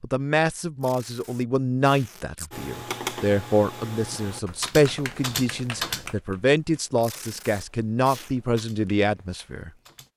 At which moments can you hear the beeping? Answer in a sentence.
You can't hear the beeping here.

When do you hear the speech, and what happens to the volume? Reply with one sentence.
The speech can be heard from 0.0 to 9.7 s, at a steady volume.